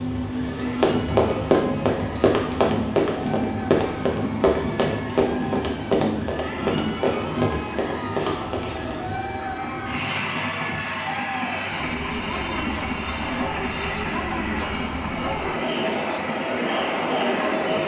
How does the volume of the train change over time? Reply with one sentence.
The loudness of the train stays about the same.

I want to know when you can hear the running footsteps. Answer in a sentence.
You can hear the running footsteps from 0.5 to 8.9 s.